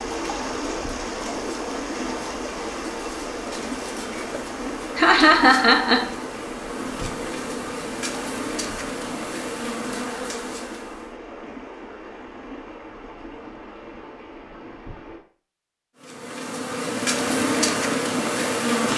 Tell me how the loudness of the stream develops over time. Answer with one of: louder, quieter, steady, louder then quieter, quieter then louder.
quieter.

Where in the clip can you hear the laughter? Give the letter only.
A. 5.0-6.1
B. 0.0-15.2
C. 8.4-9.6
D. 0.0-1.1
A.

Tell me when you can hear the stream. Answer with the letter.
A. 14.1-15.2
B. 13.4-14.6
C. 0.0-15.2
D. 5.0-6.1
C.